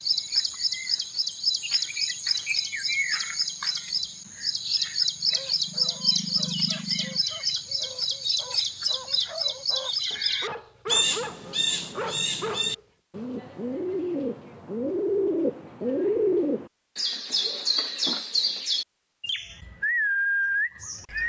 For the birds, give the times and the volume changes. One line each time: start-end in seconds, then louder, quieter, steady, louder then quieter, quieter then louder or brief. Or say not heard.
0.0-21.2 steady.